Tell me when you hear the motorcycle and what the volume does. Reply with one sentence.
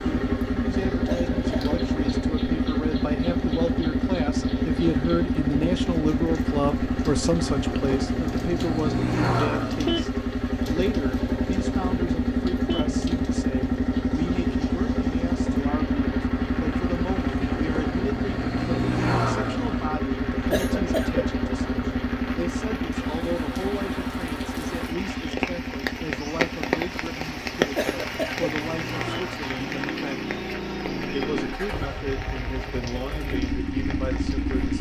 The motorcycle can be heard from 0.0 to 34.7 s, getting quieter.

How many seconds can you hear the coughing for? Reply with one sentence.
You can hear the coughing for 2 seconds altogether.